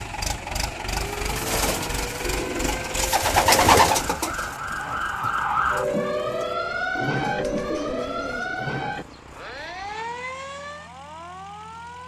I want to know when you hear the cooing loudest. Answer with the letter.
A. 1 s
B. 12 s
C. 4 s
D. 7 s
C.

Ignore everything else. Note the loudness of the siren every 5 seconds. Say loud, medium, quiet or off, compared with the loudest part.
medium, loud, medium.